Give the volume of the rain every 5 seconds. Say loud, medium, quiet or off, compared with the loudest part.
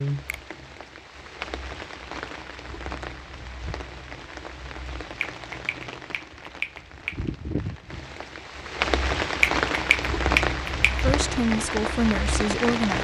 medium, loud, loud.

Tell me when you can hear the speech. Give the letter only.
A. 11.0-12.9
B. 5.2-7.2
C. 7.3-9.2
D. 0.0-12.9
A.